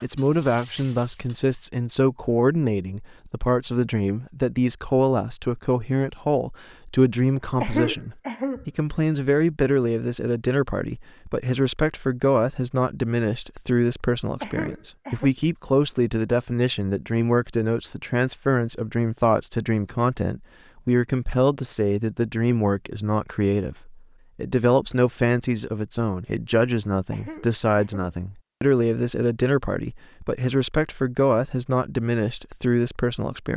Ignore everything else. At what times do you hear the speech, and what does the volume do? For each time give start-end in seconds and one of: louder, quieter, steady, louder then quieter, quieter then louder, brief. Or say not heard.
0.0-33.5 steady.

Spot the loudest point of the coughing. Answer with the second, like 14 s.
8 s.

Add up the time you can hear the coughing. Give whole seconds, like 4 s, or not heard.
3 s.